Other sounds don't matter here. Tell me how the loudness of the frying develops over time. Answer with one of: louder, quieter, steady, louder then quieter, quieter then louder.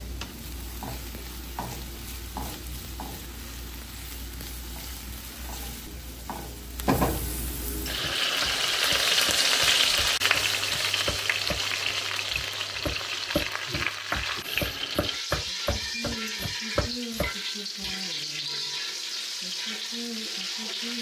louder then quieter.